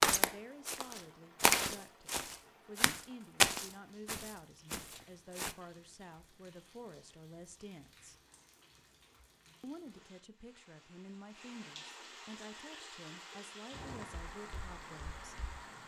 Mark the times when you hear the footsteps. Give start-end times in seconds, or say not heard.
0.0-5.5, 13.7-15.6.